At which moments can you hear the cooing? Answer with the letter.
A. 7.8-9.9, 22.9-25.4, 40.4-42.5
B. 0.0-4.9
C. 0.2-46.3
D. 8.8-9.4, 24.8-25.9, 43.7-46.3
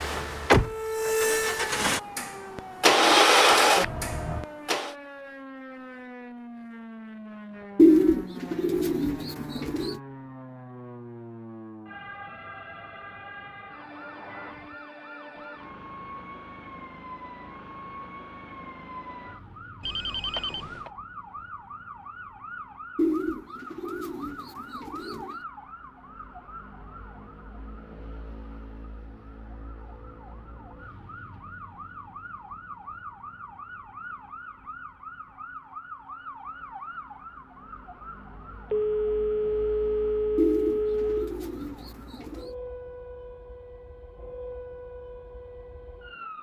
A.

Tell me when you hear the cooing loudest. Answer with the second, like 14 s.
8 s.